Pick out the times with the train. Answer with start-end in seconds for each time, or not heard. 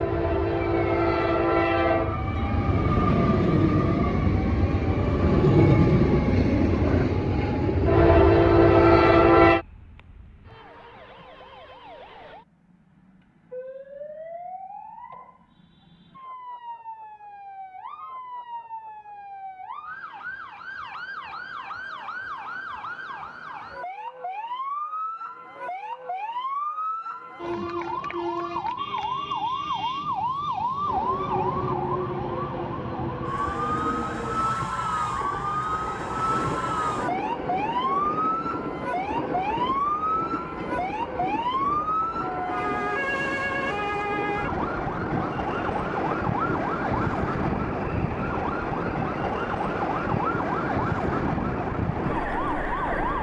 0.0-9.7, 30.9-53.1.